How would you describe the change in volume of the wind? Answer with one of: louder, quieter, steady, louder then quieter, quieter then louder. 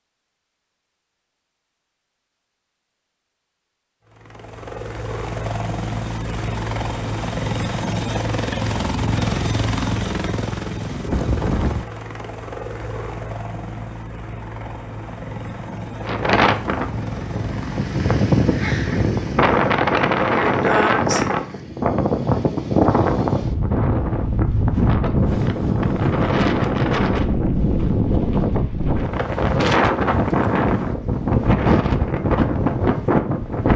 steady.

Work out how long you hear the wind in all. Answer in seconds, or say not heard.
18 s.